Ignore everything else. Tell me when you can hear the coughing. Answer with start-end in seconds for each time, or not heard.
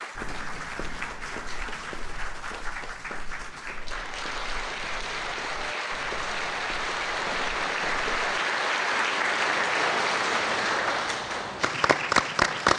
not heard.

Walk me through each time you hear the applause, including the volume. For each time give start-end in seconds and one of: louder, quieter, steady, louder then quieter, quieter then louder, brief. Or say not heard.
0.0-12.7 louder.